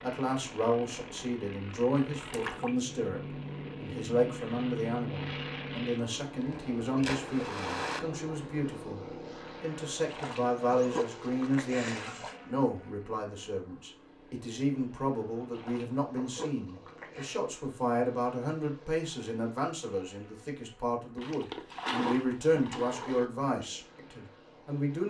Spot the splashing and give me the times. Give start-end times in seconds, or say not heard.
2.3-2.7, 6.4-8.0, 10.1-12.4, 15.5-17.4, 21.1-23.3.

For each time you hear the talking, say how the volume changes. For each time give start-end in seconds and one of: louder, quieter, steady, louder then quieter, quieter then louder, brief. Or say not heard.
0.0-25.0 steady.